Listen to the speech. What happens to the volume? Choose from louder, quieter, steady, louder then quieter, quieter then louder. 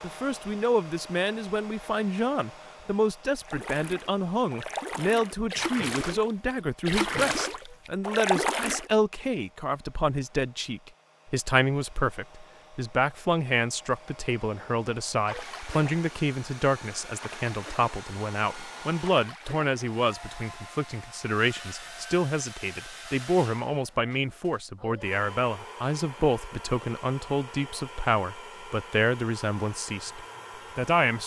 steady.